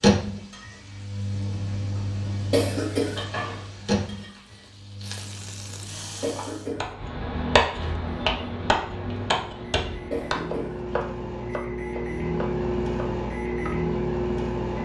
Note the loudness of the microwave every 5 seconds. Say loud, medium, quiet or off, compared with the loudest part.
loud, quiet, loud.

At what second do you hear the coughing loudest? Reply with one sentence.
The volume of the coughing peaks at 3 seconds.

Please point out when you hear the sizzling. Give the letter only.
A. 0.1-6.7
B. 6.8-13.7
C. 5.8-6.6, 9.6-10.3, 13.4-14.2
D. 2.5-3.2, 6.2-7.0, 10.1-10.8
A.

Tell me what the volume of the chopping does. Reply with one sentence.
The loudness of the chopping goes down.